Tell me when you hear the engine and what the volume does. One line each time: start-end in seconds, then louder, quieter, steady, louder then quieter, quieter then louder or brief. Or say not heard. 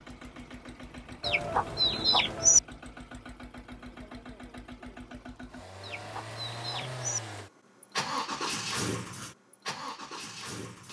0.0-10.8 louder.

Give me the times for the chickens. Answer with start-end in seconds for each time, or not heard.
1.2-2.6, 5.8-7.2.